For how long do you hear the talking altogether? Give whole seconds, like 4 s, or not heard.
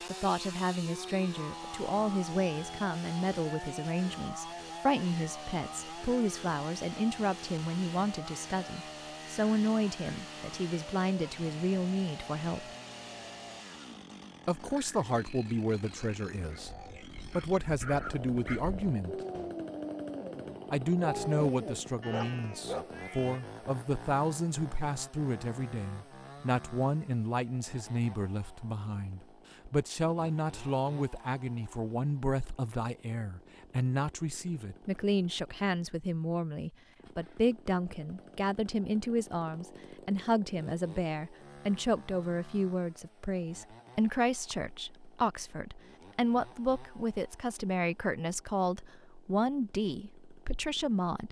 48 s.